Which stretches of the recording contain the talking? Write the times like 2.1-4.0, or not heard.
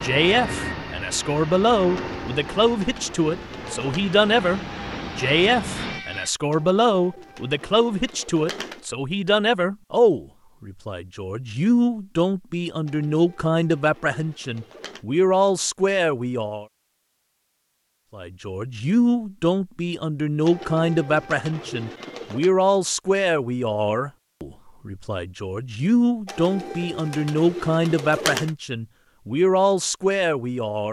0.0-16.6, 18.1-30.8.